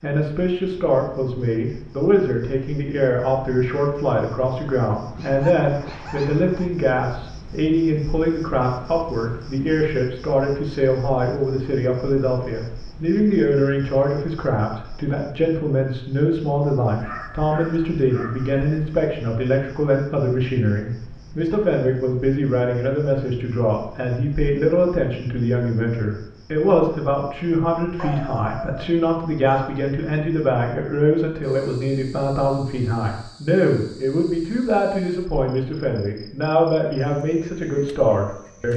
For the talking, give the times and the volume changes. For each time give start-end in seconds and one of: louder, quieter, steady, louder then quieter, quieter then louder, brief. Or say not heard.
0.0-38.7 steady.